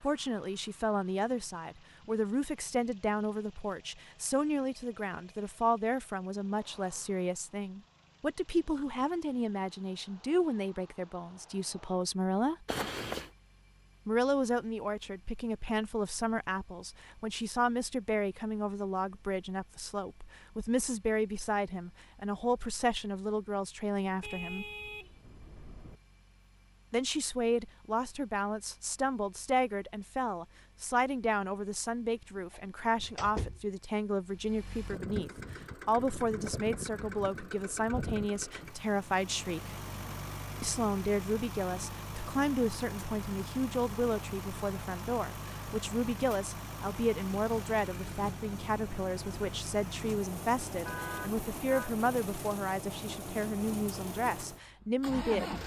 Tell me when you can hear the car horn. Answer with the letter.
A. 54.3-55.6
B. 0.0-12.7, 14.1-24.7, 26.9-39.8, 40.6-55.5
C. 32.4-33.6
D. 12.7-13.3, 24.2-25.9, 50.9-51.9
D.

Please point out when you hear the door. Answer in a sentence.
You can hear the door from 32.4 to 33.6 s.